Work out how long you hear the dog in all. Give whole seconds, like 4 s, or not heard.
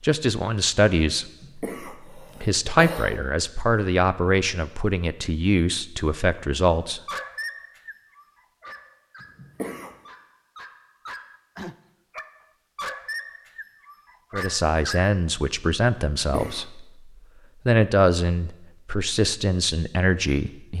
8 s.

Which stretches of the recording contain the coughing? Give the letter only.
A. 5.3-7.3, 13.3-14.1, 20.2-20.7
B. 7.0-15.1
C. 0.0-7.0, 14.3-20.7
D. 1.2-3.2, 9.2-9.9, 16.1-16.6
D.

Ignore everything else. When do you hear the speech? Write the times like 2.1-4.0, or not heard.
0.0-7.0, 14.3-20.7.